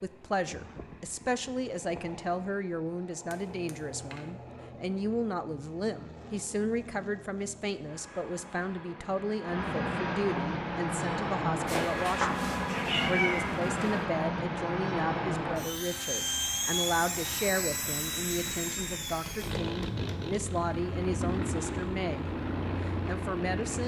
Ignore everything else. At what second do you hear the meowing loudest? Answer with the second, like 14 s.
13 s.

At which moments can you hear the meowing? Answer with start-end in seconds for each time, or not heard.
11.7-13.8.